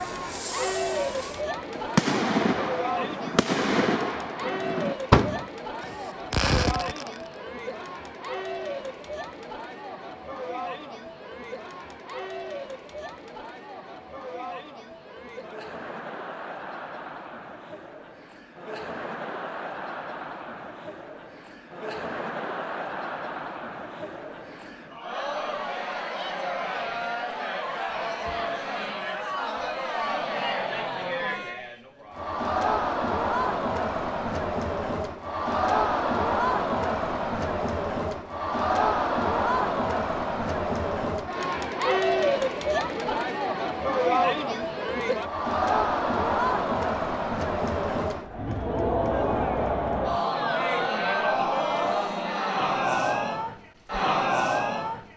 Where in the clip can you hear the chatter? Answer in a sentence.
You can hear the chatter from 0.0 to 55.1 s.